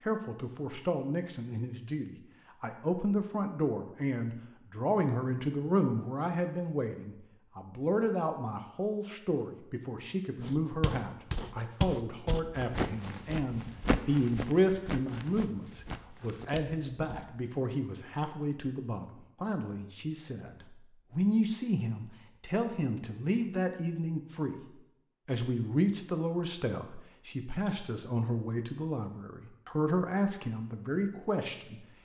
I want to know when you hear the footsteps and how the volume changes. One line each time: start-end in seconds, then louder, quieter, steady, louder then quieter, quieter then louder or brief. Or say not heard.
10.4-17.2 quieter.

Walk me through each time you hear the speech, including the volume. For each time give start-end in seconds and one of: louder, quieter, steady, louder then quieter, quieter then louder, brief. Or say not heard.
0.1-31.9 steady.